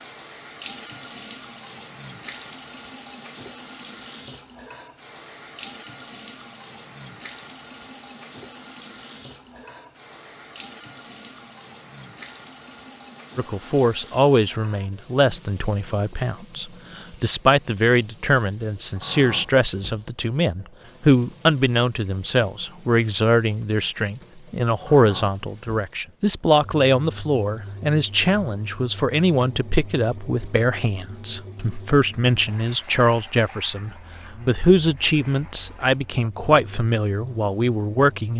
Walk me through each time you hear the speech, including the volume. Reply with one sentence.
You can hear the speech from 13.3 to 38.3 s, at a steady volume.